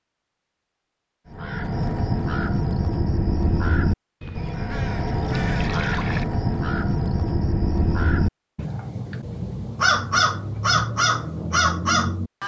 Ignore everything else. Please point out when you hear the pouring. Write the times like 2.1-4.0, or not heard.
4.2-6.2.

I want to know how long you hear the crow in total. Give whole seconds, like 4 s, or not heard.
11 s.